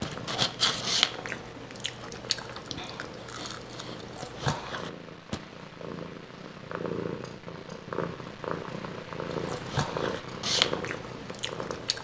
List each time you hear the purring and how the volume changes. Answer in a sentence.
The purring can be heard from 0.0 to 11.9 s, getting louder.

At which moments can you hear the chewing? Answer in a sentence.
The chewing can be heard from 0.0 to 5.4 s and from 9.3 to 11.9 s.